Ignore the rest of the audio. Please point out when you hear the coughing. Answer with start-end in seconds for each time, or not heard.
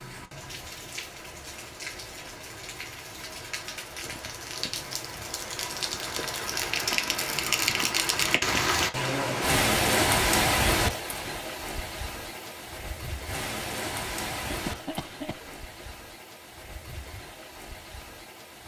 14.4-15.9.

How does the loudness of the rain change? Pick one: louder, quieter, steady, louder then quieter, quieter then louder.
louder then quieter.